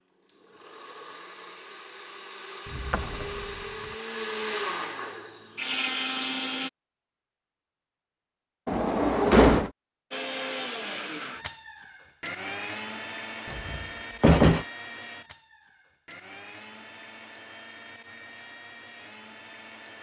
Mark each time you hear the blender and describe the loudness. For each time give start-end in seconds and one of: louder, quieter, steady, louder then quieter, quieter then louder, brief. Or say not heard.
0.0-6.7 louder
10.1-19.9 quieter.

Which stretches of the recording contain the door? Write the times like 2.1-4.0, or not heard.
2.7-3.5, 8.7-9.7, 13.5-14.7.